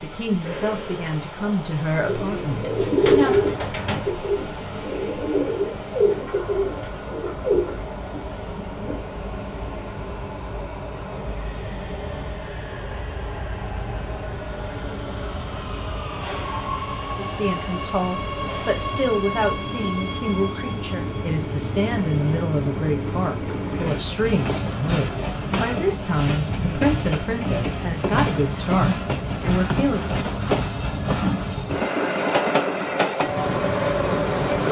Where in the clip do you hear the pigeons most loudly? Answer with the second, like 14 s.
3 s.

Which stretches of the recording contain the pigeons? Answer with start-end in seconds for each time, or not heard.
2.0-8.9.